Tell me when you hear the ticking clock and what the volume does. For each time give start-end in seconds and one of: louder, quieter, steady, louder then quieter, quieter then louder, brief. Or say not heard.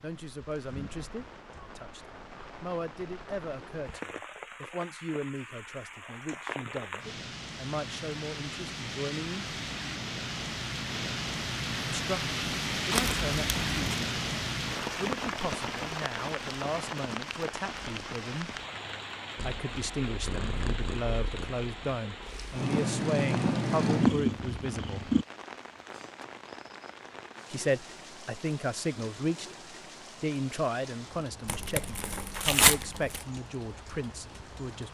not heard.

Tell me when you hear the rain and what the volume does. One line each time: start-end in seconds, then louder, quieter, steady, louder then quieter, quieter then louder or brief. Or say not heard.
0.0-34.8 louder then quieter.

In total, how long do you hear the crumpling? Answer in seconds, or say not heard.
3 s.